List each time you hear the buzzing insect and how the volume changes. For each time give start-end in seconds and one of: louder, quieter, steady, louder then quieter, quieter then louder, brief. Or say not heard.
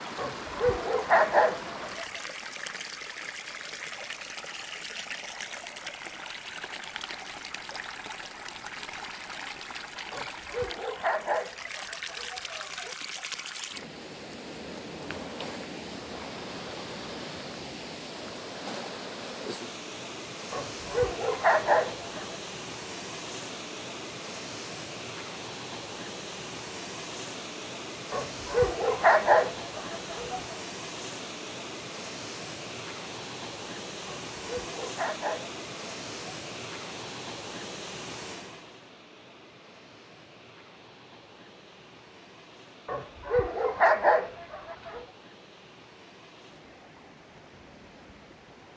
not heard.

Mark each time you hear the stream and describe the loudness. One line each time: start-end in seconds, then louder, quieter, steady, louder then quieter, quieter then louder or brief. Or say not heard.
0.0-48.7 quieter.